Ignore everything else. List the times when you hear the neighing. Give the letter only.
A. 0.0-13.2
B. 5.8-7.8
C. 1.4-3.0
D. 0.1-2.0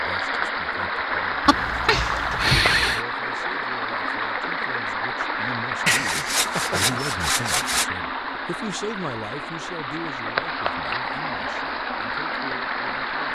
C.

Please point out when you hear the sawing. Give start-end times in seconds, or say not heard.
5.8-7.8.